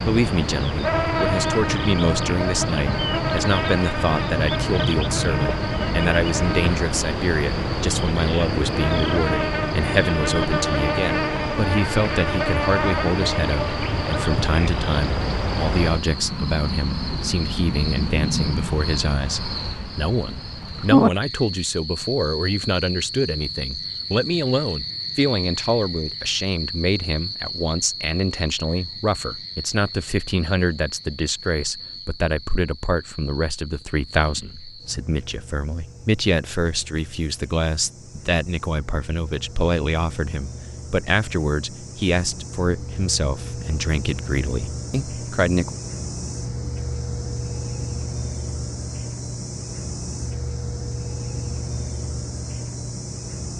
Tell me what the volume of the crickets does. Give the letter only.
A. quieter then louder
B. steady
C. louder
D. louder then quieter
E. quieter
A.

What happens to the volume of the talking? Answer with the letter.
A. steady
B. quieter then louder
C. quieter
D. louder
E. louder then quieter
A.